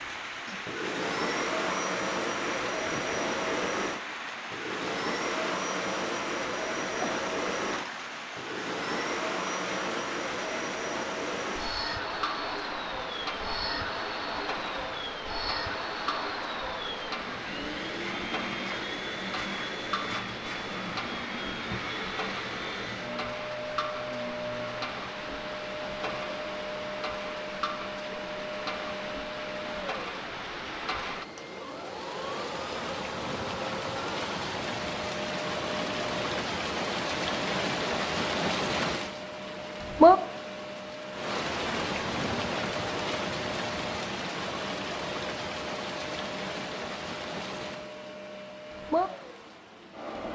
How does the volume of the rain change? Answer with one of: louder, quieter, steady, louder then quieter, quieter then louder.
louder.